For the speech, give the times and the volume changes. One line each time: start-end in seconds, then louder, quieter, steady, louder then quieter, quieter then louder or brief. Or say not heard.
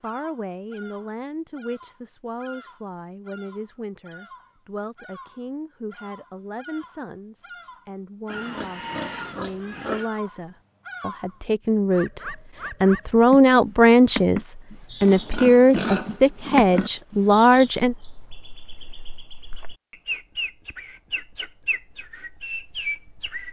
0.0-17.9 louder.